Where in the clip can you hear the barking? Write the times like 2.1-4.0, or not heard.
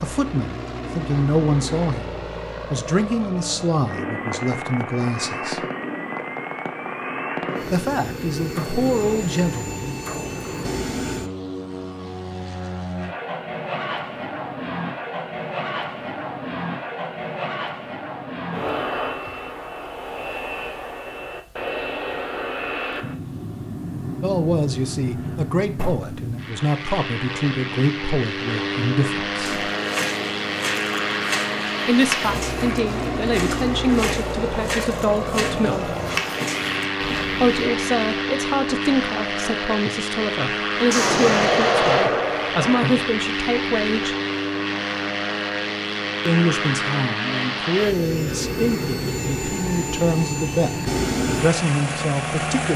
not heard.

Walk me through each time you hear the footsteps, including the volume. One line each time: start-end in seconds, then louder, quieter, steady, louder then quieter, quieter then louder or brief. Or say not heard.
29.4-37.7 steady.